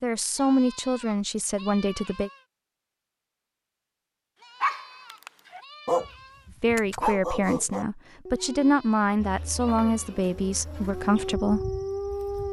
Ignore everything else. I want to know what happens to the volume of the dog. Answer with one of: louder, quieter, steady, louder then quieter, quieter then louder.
quieter then louder.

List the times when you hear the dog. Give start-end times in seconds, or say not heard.
4.6-12.4.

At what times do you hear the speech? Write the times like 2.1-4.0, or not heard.
0.0-2.3, 6.6-11.7.